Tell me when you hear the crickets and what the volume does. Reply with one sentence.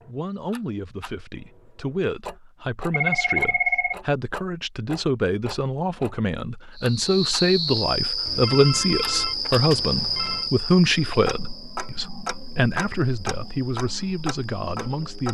The crickets can be heard from 6.8 to 15.3 s, getting quieter.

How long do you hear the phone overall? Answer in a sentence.
You can hear the phone for 3 seconds altogether.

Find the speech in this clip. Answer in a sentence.
You can hear the speech from 0.1 to 15.3 s.